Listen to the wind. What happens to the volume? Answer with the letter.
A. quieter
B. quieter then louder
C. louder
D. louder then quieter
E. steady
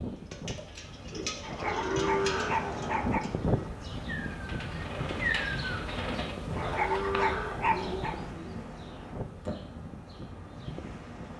D.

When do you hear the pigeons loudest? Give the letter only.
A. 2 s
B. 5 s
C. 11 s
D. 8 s
B.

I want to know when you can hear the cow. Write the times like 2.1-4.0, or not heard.
1.6-3.4, 6.5-8.3.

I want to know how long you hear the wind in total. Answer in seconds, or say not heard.
11 s.